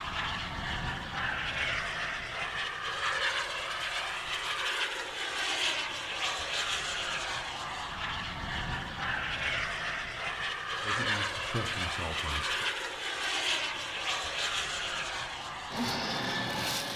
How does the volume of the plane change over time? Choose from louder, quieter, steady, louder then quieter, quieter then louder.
steady.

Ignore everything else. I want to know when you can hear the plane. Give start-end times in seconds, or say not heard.
0.0-16.9.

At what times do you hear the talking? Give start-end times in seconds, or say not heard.
10.8-12.7.